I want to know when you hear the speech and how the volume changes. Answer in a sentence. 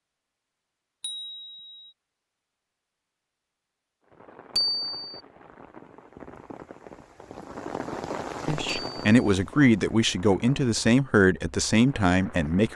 The speech can be heard from 8.4 to 12.7 s, at a steady volume.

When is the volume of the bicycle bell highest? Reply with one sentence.
The loudest moment of the bicycle bell is at 5 seconds.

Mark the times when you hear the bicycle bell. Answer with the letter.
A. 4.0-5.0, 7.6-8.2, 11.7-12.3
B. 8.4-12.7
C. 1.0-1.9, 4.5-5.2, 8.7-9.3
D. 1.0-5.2
C.